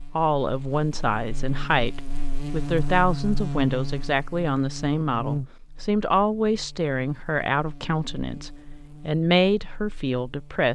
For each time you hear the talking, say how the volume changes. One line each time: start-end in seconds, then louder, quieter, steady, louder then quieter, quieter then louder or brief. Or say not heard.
0.1-10.6 steady.